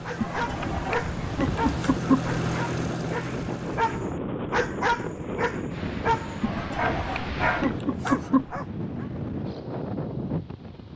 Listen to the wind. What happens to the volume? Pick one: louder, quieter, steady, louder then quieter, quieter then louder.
steady.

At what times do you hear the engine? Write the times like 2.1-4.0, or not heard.
0.0-4.2.